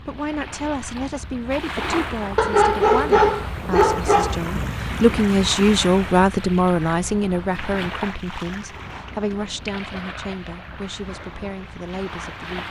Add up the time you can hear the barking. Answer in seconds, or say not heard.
2 s.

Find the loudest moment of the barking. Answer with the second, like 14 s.
3 s.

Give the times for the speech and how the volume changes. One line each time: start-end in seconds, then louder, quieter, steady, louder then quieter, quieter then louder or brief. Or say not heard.
0.0-12.6 louder then quieter.